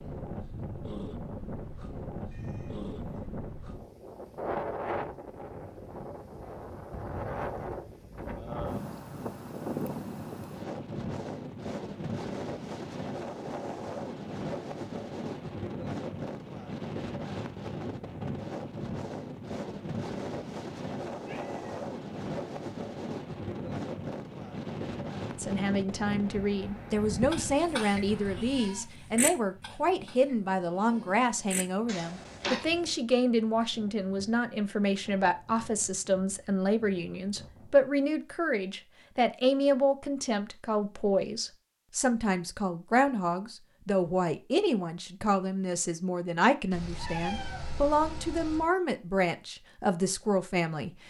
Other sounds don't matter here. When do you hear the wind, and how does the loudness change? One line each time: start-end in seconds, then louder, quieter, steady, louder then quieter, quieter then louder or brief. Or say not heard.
0.0-37.8 quieter.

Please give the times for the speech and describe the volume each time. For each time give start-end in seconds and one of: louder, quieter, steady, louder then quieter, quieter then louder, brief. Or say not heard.
25.4-51.0 steady.